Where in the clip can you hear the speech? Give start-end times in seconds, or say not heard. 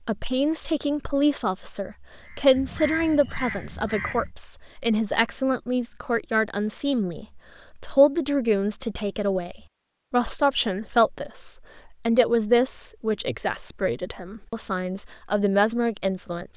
0.1-16.5.